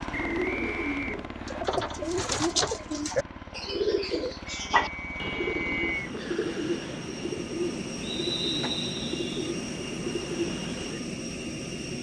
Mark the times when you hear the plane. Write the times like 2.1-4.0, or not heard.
0.0-11.9.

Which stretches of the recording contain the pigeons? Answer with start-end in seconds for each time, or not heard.
0.1-11.0.